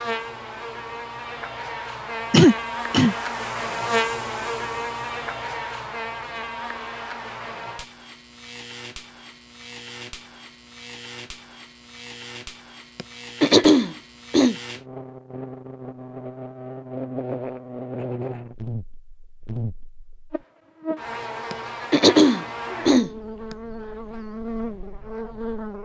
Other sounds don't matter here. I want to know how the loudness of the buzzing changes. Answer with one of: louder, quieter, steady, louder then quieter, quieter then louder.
quieter then louder.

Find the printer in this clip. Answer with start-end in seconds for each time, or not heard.
not heard.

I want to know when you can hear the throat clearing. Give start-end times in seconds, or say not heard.
2.3-3.1, 12.9-14.6, 21.5-23.1.